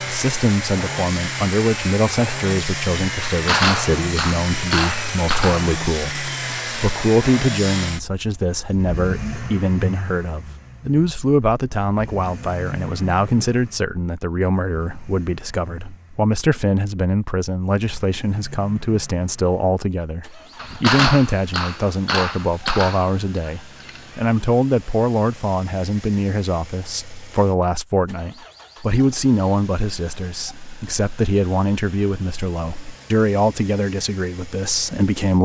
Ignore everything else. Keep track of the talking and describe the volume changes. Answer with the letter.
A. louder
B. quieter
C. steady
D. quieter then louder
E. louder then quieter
C.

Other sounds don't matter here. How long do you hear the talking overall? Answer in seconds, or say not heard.
35 s.